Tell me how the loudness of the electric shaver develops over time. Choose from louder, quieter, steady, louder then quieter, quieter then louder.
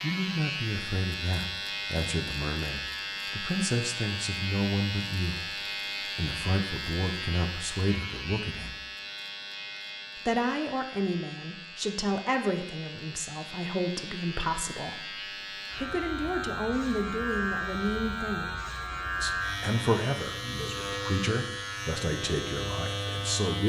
quieter then louder.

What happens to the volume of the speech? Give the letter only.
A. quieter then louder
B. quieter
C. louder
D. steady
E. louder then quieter
D.